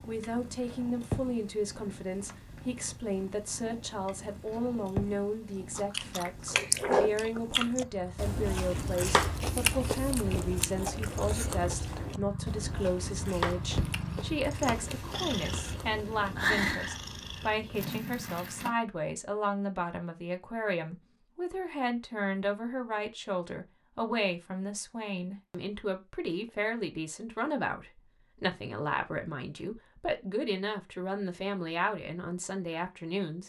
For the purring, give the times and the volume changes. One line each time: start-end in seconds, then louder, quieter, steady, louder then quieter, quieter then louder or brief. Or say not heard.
0.0-18.7 louder.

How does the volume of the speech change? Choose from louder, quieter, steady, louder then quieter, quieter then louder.
steady.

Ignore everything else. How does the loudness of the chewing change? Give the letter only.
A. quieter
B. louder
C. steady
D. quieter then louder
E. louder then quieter
A.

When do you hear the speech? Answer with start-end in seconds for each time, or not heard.
0.1-33.4.